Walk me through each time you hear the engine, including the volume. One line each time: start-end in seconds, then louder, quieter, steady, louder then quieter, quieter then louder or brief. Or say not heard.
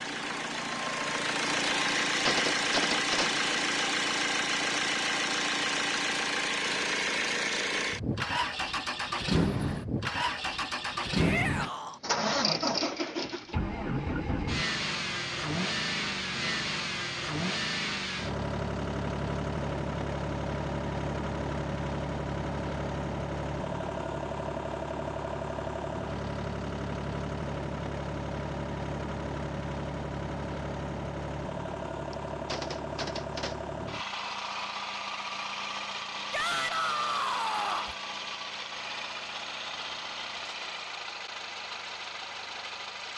0.0-43.1 quieter.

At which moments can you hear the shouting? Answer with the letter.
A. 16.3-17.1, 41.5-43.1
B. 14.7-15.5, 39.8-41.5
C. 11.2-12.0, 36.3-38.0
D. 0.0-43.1
C.